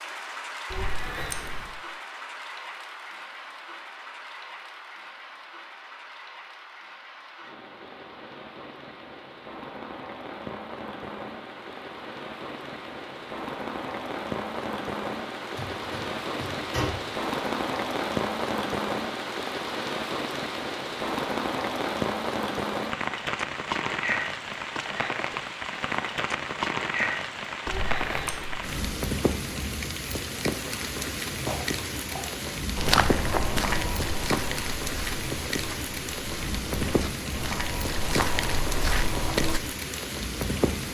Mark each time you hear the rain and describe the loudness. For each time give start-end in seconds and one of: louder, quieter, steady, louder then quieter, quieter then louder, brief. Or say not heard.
0.0-40.8 louder.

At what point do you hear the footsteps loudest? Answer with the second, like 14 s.
33 s.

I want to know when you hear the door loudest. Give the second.
17 s.